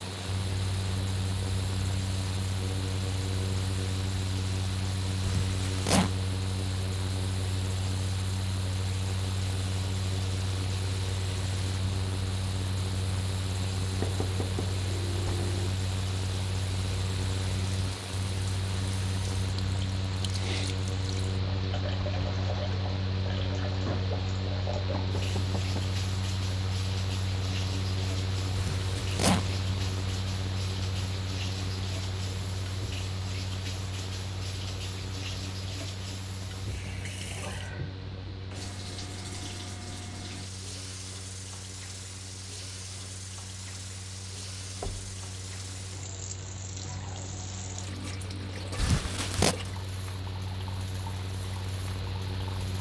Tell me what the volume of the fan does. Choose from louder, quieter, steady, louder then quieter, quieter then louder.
quieter.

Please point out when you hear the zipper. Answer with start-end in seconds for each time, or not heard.
5.2-6.1, 28.6-29.6, 48.8-49.5.